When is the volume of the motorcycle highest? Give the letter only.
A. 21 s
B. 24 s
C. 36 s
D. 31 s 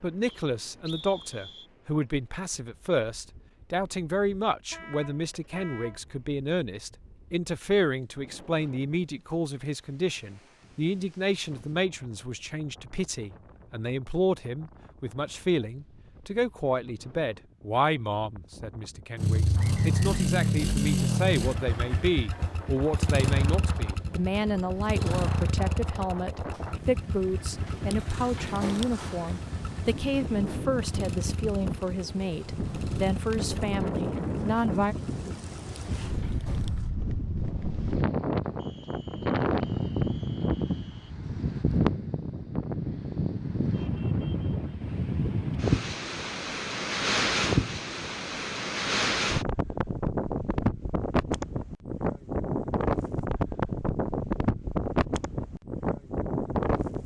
A.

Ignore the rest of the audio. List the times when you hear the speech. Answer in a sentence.
The speech can be heard from 0.0 to 35.0 s.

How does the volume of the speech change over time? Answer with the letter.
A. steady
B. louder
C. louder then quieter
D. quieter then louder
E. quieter
A.